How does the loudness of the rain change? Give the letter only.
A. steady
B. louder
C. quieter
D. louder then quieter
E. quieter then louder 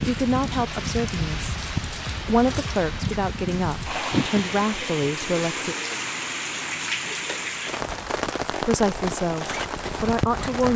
A.